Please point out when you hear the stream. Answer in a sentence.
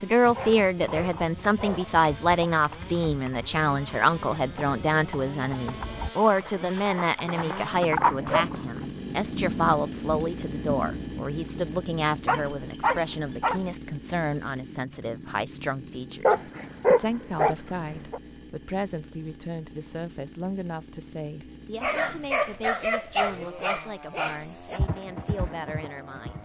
You can't hear the stream here.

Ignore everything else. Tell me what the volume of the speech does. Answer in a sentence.
The volume of the speech goes down.